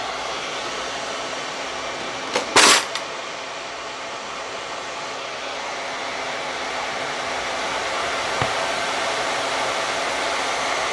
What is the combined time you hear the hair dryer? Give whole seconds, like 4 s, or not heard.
11 s.